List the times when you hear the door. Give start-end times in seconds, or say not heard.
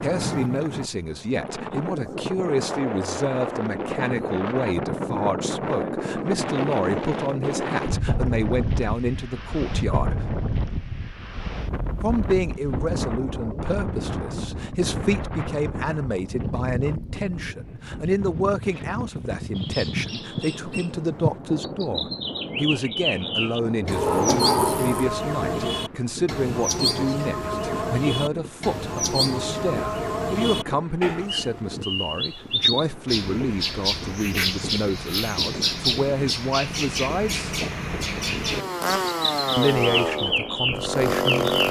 23.9-25.1.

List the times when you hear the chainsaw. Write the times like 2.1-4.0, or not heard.
38.4-41.6.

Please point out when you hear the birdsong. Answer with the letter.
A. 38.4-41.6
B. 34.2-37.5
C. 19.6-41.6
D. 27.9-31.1
C.